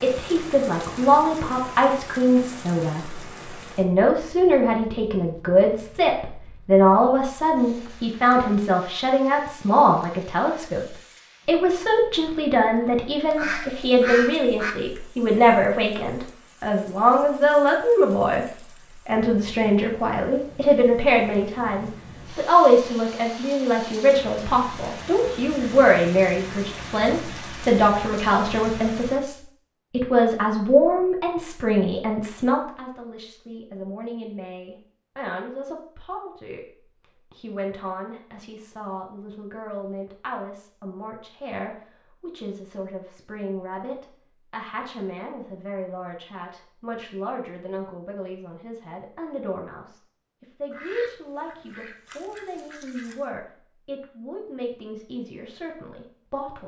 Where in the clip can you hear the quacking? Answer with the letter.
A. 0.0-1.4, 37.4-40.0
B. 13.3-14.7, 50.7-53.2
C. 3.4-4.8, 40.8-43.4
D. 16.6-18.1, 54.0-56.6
B.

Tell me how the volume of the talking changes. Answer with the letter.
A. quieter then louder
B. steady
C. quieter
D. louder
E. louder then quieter
C.